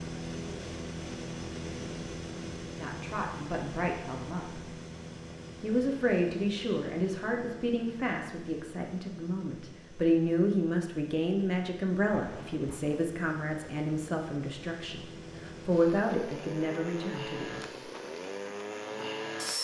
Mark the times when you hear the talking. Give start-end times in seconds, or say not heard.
2.8-4.6, 5.6-17.6.